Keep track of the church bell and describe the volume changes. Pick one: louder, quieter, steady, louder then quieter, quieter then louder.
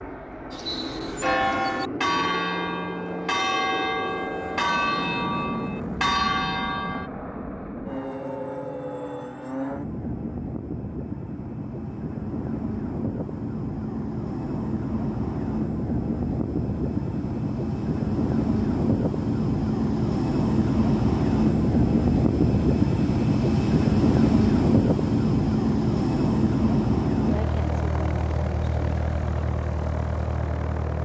steady.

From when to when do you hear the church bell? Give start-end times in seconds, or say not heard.
0.5-7.1.